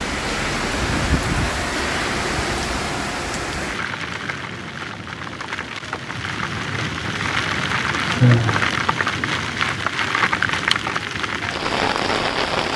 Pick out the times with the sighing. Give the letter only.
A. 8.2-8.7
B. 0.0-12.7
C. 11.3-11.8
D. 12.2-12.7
A.